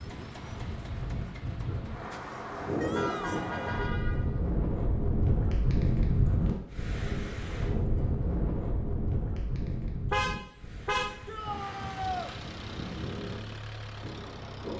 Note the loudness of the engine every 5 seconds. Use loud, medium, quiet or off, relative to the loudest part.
loud, off, loud.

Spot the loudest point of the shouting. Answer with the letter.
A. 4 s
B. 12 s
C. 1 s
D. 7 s
B.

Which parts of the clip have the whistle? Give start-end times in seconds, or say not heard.
not heard.